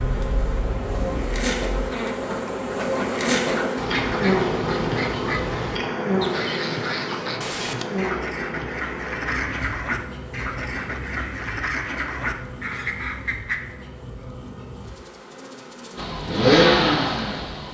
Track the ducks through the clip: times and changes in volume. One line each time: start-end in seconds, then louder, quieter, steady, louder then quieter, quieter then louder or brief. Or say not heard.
1.9-13.7 steady.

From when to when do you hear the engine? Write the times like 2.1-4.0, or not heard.
0.0-1.9, 15.9-17.6.